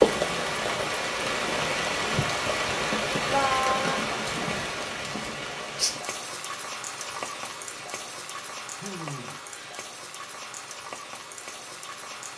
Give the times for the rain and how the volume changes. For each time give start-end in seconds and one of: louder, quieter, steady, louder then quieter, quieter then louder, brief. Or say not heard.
0.0-12.3 quieter.